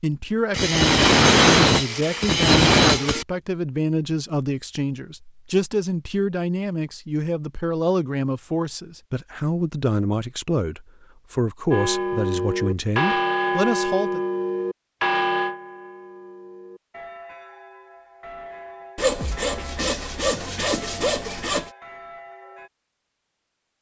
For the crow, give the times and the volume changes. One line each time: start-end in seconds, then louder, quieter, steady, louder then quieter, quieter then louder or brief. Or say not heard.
not heard.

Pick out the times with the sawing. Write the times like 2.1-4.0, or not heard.
0.5-3.2, 18.9-21.7.